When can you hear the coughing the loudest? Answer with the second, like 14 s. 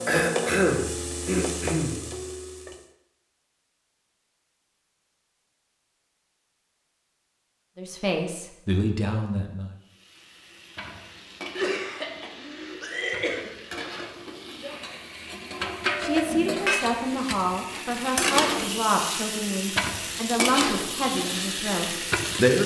1 s.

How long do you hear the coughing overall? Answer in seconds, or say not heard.
4 s.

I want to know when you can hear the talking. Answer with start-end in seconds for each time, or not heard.
7.8-9.7, 16.0-22.6.